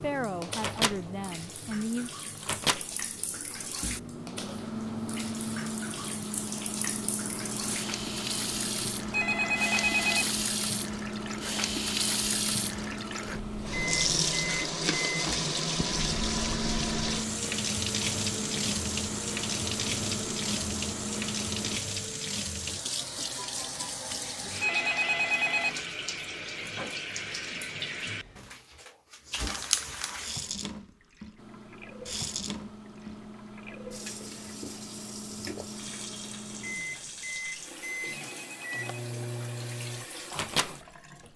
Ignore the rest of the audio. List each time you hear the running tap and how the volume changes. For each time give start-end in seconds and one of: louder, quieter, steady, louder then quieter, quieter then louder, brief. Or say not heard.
0.0-41.3 louder then quieter.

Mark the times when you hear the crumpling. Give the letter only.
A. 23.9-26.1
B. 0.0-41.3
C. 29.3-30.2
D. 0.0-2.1
C.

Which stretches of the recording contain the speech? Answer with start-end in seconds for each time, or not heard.
0.0-2.1.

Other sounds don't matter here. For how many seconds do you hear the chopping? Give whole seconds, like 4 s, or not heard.
not heard.